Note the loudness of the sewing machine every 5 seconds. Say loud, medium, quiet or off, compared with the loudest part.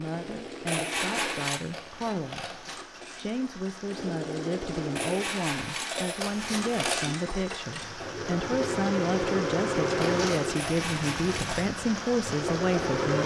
medium, loud, loud.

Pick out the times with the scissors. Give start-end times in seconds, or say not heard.
1.7-2.8, 6.2-7.2, 10.0-10.6.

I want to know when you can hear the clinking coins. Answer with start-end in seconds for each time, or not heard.
0.7-1.6, 5.0-6.7, 10.6-11.7.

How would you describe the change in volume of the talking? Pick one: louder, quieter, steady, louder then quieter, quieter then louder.
louder.